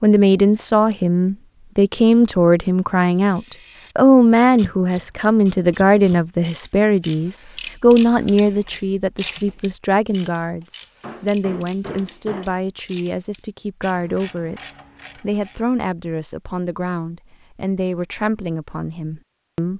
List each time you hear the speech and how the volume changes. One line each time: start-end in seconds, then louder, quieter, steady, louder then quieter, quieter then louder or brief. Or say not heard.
0.0-19.7 quieter.